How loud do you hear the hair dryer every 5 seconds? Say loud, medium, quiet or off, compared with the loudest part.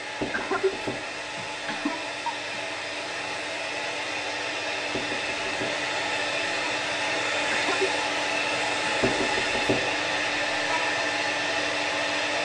medium, loud, loud.